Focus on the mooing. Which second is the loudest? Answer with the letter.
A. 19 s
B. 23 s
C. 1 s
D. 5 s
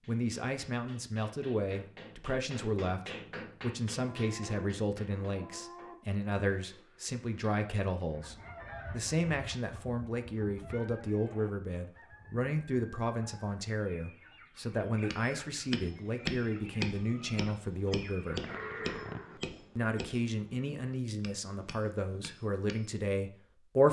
A.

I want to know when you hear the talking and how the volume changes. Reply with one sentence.
You can hear the talking from 0.1 to 18.5 s, at a steady volume; and from 19.8 to 23.8 s, at a steady volume.